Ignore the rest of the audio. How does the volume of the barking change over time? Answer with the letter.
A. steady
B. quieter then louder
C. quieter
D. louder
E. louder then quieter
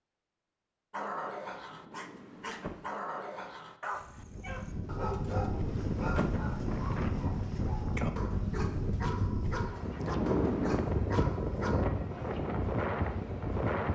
A.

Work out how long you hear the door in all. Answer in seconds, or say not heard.
3 s.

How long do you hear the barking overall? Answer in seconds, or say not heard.
11 s.